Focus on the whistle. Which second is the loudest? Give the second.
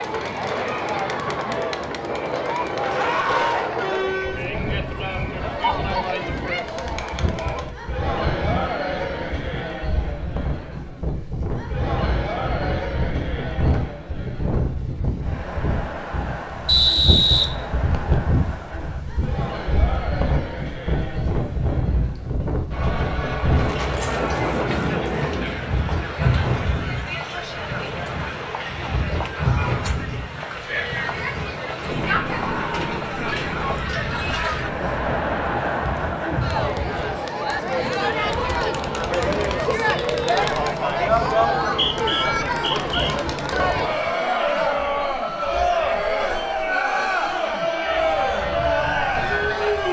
17 s.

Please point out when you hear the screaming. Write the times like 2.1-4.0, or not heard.
3.0-3.6, 32.2-33.0.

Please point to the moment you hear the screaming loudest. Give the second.
3 s.